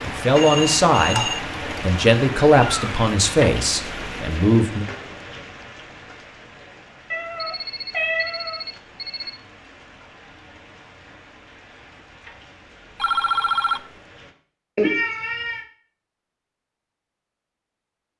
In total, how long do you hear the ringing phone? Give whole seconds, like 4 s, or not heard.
4 s.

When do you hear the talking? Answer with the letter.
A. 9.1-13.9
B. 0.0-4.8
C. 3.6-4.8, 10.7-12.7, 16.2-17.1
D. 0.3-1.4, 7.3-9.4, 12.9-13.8
B.